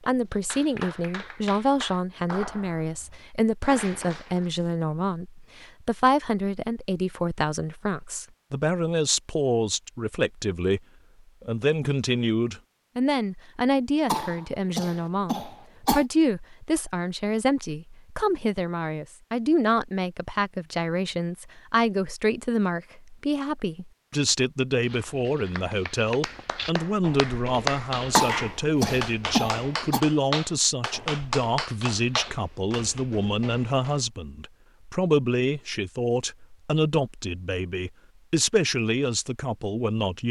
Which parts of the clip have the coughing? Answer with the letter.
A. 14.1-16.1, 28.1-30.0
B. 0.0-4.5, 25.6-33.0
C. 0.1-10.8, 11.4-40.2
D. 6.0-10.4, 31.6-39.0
A.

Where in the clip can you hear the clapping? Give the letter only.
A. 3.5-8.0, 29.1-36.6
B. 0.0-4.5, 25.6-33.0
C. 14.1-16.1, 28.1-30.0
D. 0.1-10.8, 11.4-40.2
B.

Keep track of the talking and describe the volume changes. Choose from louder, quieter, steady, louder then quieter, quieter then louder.
steady.